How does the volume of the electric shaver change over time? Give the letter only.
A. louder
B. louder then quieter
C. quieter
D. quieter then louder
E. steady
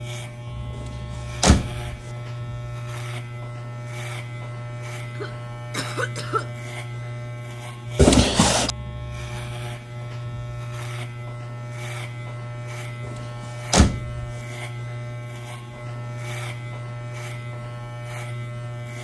E.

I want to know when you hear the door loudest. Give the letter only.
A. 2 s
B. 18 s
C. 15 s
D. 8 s
D.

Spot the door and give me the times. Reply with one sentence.
The door can be heard from 1.4 to 1.9 s, from 8.0 to 8.7 s and from 13.7 to 14.2 s.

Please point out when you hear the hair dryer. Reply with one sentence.
You can't hear the hair dryer here.